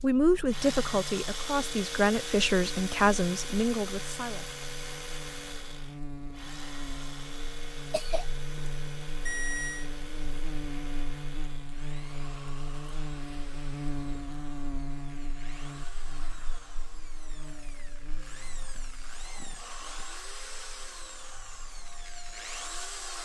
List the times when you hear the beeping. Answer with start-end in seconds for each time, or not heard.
9.2-9.9.